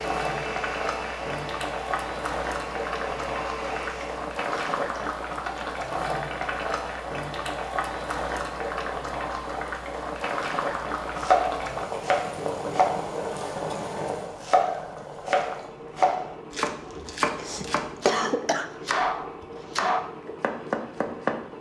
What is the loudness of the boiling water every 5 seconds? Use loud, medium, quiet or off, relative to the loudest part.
loud, loud, loud, medium, medium.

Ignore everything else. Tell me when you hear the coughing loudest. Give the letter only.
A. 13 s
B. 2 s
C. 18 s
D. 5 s
C.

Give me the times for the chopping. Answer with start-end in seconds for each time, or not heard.
10.6-21.4.